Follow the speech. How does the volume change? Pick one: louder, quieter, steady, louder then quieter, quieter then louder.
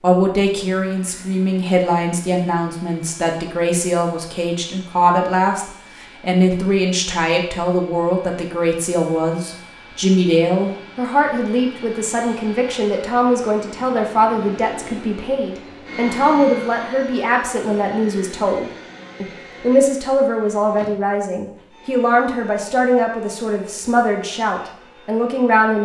steady.